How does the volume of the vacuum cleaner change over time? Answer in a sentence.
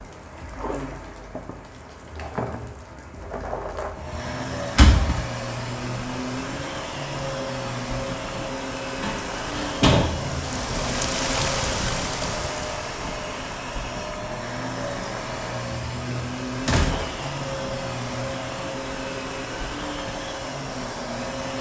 The loudness of the vacuum cleaner stays about the same.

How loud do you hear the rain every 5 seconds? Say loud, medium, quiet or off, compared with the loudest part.
medium, medium, loud, medium, medium.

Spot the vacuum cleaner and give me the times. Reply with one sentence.
The vacuum cleaner can be heard from 4.0 to 21.5 s.